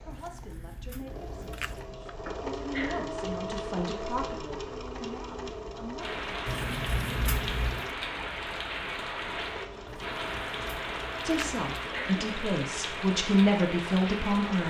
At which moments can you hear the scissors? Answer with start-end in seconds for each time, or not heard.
0.1-1.9, 6.5-8.0, 9.8-11.7.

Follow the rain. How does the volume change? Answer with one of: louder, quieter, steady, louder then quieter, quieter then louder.
steady.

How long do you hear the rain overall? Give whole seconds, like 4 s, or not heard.
9 s.